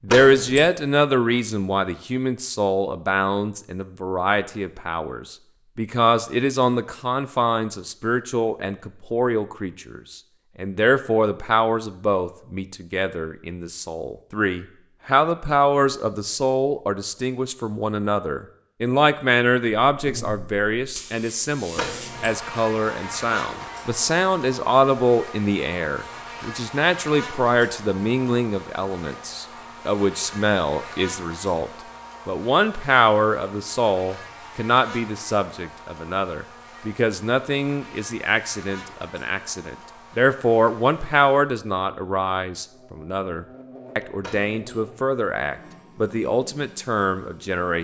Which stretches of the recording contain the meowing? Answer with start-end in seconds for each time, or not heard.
not heard.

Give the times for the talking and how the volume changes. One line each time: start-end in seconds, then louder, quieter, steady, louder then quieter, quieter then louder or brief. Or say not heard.
0.0-47.7 steady.